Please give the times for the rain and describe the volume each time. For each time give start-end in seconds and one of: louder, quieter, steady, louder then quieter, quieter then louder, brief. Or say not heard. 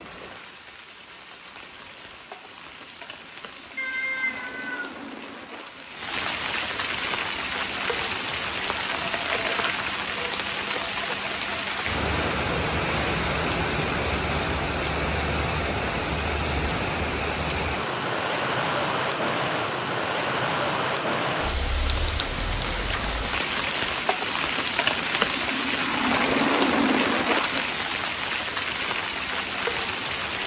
0.0-30.4 louder.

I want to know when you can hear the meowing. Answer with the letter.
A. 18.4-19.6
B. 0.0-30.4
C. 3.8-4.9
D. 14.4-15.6
C.